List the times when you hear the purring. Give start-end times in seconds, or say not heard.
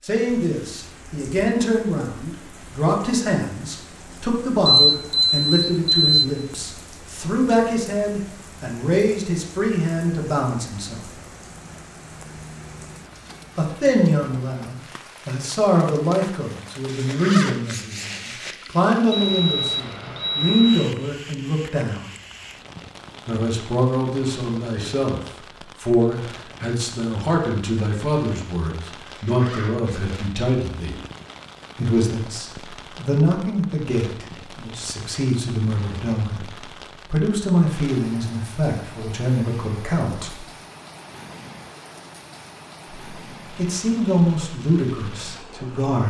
not heard.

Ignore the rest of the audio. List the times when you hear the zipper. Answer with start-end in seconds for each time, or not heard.
16.9-18.6, 29.1-30.1.